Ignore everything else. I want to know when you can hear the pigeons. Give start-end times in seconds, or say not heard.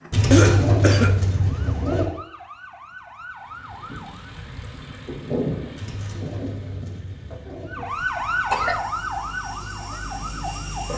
0.1-2.1, 5.8-7.8.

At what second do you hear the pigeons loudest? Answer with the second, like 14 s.
1 s.